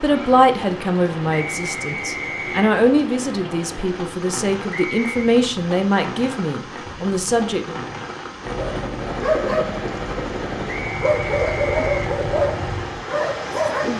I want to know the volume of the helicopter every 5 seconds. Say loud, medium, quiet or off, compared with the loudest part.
off, loud, loud.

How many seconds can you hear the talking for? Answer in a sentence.
You can hear the talking for 8 seconds altogether.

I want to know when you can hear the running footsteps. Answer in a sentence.
You can't hear the running footsteps here.